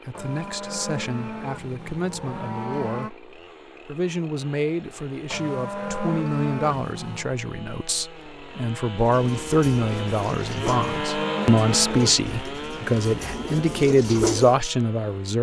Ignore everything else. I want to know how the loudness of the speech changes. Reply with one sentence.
The loudness of the speech goes up.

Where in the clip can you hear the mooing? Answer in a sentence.
The mooing can be heard from 0.1 to 3.1 s, from 5.3 to 7.3 s and from 10.7 to 12.2 s.